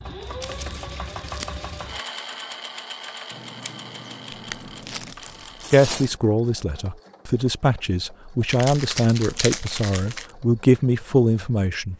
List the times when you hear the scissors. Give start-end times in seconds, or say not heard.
3.3-5.2.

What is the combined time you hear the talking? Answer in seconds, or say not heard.
6 s.